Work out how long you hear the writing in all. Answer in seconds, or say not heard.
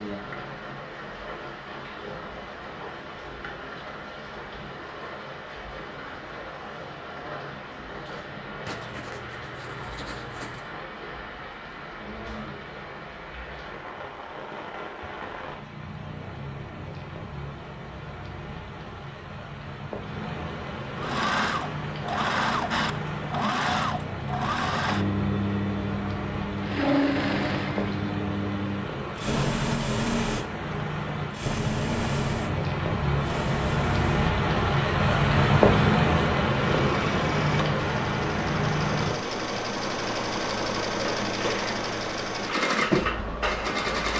2 s.